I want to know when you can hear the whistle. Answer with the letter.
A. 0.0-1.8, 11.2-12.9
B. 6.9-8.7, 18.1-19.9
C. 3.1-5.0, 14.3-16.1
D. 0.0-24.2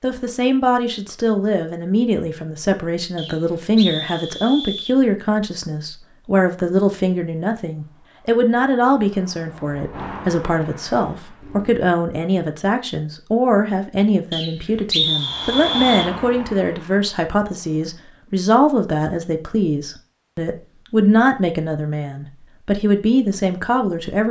C.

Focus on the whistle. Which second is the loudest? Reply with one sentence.
The loudest moment of the whistle is at 15 seconds.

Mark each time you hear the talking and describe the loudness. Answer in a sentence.
You can hear the talking from 0.0 to 24.2 s, at a steady volume.